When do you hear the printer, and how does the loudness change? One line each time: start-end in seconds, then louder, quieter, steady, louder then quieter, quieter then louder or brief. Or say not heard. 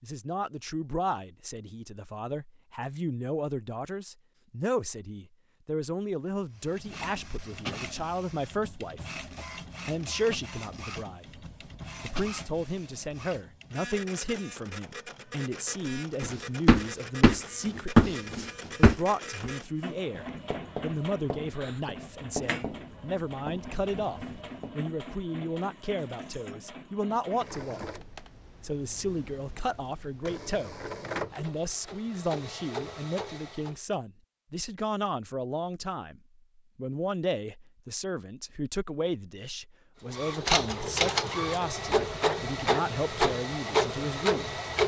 6.5-33.8 steady
40.1-44.8 steady.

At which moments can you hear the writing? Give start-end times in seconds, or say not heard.
16.2-24.9.